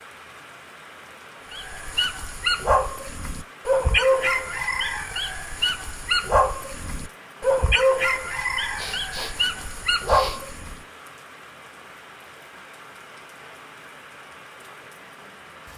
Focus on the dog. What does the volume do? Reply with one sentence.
The loudness of the dog stays about the same.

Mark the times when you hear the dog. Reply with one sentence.
You can hear the dog from 1.5 to 10.8 s.